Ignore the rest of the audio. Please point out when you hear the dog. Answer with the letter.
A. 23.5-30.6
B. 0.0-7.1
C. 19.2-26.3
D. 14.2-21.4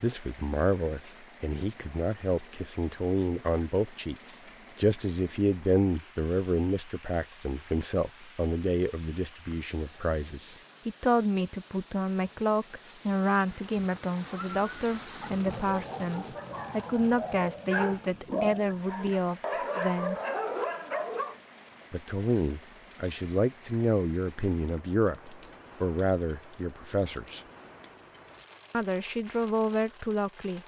D.